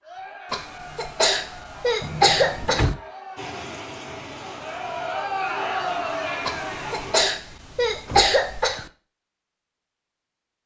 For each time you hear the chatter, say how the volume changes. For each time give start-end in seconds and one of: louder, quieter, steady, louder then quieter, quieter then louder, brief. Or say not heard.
0.0-7.0 louder.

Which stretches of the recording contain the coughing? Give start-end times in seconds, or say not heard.
0.5-3.0, 6.5-8.9.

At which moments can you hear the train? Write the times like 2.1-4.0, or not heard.
3.4-7.2.